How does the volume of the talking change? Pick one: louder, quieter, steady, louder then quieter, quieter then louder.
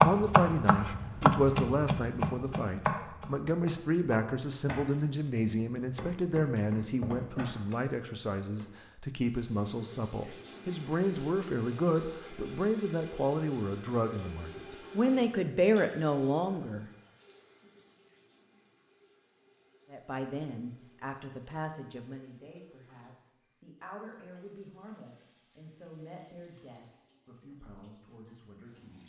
quieter.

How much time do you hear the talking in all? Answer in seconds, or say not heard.
26 s.